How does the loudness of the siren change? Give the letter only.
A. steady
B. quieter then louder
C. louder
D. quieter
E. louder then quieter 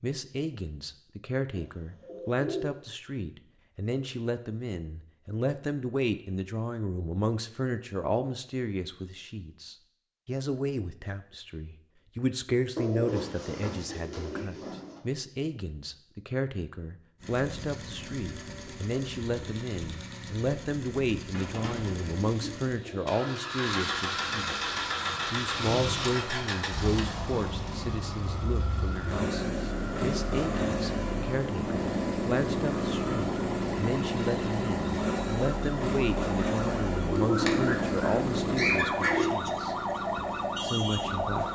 C.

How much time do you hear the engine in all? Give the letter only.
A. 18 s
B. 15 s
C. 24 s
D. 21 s
C.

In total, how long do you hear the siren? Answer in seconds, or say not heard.
17 s.